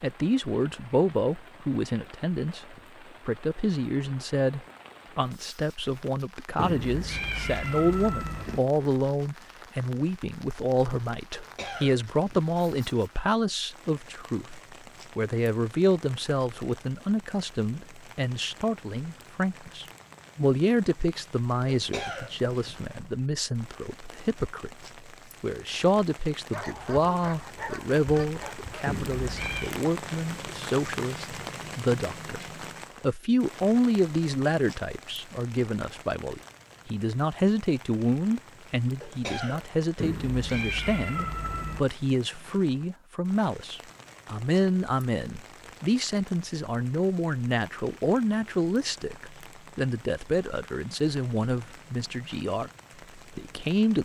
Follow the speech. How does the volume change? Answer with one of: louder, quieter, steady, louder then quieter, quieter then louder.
steady.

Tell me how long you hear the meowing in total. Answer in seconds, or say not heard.
5 s.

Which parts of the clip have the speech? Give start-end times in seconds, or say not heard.
0.0-32.4, 33.0-54.0.